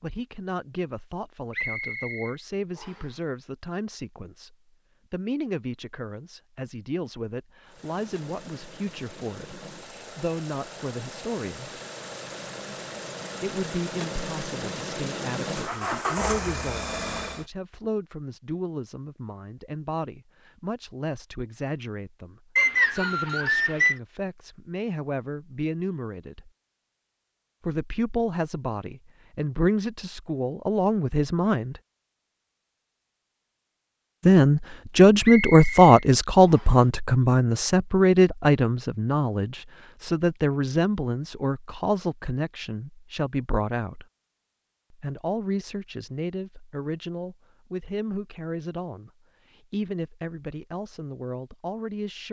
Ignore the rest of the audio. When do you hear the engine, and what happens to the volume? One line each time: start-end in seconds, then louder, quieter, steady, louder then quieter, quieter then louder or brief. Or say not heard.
7.7-17.4 louder.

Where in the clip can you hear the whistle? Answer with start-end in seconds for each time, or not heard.
1.5-3.1, 22.6-23.9, 35.2-36.8.